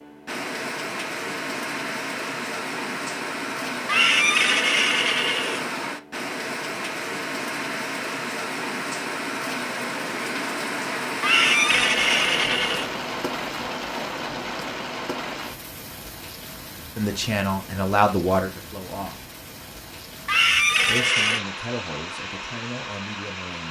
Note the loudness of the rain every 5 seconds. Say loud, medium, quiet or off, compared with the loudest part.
loud, loud, loud, medium, medium.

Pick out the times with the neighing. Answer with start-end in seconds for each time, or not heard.
3.9-5.7, 11.2-12.9, 20.2-21.4.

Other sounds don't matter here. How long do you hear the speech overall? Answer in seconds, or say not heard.
5 s.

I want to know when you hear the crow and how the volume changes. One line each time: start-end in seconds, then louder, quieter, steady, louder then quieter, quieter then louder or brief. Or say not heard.
not heard.